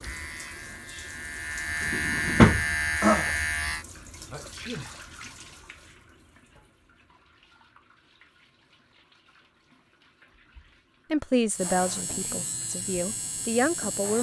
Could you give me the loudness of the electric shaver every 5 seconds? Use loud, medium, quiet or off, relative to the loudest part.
loud, off, medium.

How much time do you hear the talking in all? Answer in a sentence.
You can hear the talking for 3 seconds altogether.